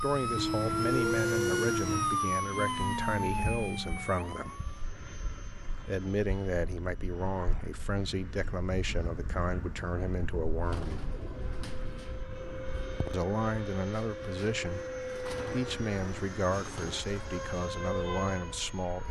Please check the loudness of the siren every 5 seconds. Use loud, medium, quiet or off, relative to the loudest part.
loud, off, off, medium.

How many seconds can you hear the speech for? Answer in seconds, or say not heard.
16 s.